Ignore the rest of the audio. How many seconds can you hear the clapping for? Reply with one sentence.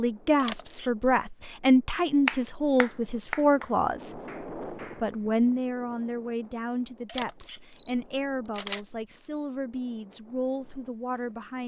You can hear the clapping for 3 seconds altogether.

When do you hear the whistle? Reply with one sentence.
You can't hear the whistle here.